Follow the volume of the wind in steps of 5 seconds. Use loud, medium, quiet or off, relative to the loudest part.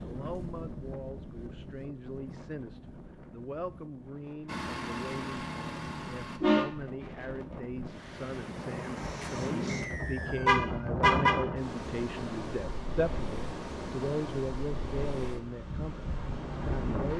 medium, loud, loud, loud.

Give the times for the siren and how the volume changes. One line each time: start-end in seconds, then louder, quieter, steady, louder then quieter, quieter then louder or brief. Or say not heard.
not heard.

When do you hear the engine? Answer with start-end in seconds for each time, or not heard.
4.5-6.4.